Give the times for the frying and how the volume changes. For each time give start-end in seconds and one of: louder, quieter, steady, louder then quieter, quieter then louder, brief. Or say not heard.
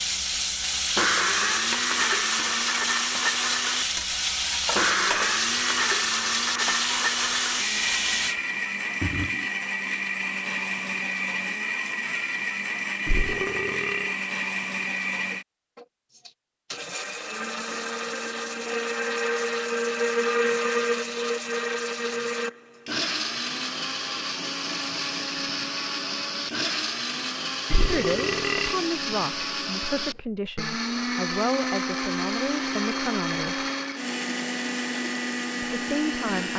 0.0-8.3 steady.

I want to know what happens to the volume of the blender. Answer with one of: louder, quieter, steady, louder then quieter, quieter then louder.
steady.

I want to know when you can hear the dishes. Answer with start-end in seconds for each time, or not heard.
not heard.